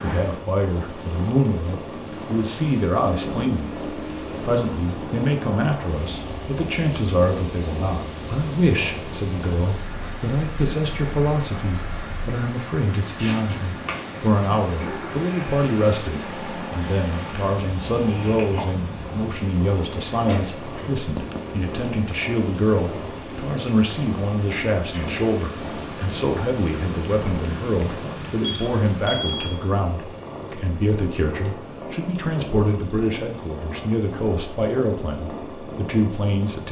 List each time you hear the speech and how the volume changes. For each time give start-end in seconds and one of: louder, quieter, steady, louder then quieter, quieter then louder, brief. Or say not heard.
0.0-36.6 steady.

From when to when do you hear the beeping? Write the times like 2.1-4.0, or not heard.
28.4-29.6.